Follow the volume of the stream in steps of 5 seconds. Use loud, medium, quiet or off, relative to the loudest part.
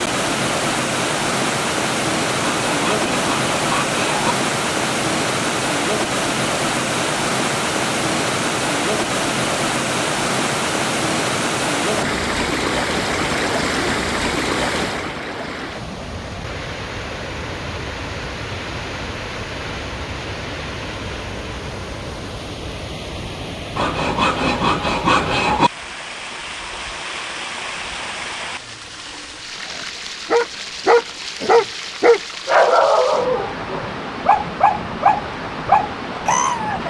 loud, loud, loud, medium, medium, medium, medium, medium.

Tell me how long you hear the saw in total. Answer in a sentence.
The saw can be heard for 4 seconds in total.